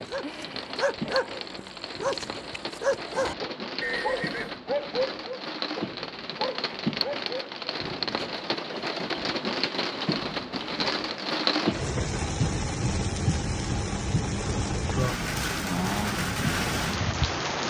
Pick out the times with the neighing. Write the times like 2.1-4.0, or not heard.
3.8-4.6.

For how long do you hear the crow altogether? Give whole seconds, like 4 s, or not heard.
not heard.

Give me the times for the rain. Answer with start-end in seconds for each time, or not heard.
0.0-17.6.